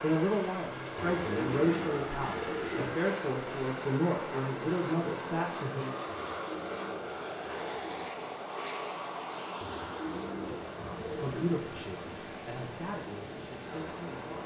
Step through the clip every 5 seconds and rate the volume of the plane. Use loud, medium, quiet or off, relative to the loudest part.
loud, loud, medium.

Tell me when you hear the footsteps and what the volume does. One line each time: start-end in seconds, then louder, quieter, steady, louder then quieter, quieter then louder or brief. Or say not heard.
not heard.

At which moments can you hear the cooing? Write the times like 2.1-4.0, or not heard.
0.9-3.0, 6.1-8.1, 9.6-11.6.